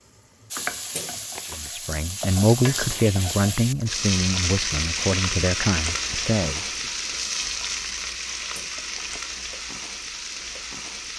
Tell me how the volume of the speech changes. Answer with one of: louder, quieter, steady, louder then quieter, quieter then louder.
quieter.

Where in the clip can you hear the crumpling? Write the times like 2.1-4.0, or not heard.
0.9-1.7, 8.6-9.2.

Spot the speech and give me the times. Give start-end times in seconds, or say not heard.
1.5-6.7.